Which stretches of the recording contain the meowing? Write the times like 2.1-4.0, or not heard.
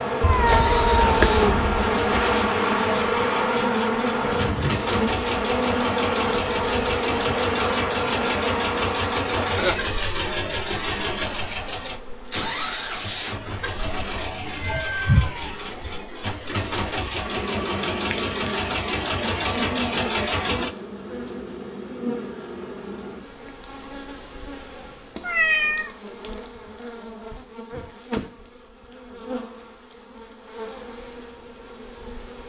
0.2-1.6, 14.4-15.9, 25.2-25.9.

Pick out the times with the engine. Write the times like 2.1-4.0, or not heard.
0.5-20.8.